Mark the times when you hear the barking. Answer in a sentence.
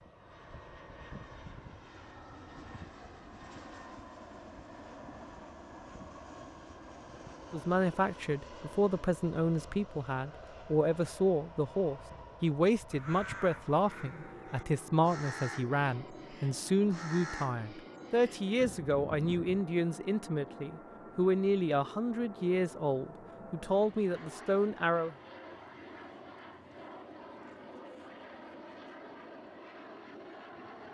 You can't hear the barking here.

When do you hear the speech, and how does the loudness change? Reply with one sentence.
The speech can be heard from 7.5 to 25.1 s, at a steady volume.